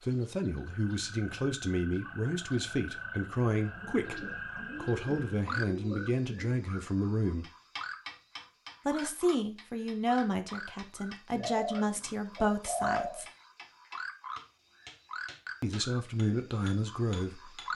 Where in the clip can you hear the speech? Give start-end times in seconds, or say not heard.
0.0-7.5, 8.8-13.2, 15.6-17.7.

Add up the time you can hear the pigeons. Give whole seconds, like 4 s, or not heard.
5 s.